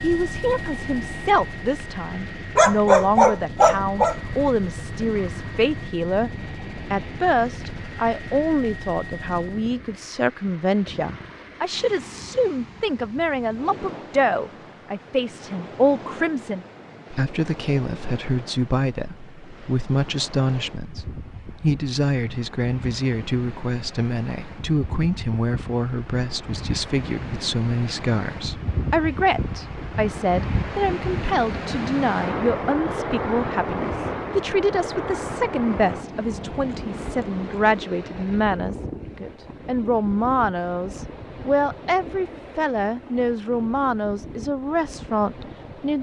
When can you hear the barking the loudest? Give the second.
3 s.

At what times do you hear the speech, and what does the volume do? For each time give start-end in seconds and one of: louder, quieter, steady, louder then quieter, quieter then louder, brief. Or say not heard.
0.0-45.9 steady.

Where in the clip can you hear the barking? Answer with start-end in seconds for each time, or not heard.
2.5-4.3.